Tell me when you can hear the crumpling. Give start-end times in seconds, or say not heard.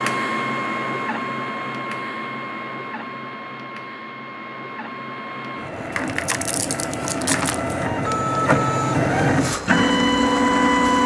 5.9-7.8.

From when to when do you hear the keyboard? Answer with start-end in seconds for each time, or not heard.
not heard.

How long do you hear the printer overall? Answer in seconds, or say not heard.
11 s.